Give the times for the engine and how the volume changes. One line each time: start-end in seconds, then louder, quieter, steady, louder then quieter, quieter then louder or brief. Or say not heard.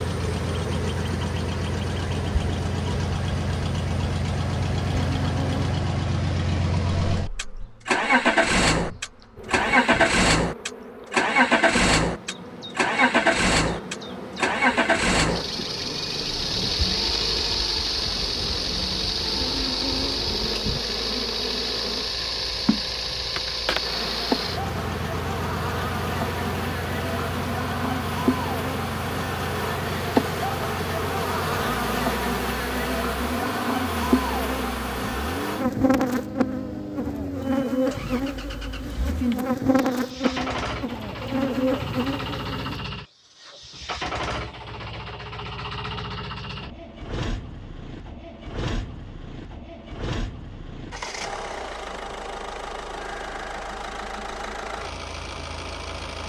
0.0-56.2 quieter.